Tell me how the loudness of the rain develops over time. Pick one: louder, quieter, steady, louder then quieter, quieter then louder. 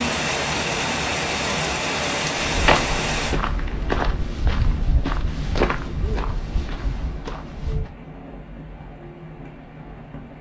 quieter.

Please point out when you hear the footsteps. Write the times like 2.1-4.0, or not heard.
2.5-7.9.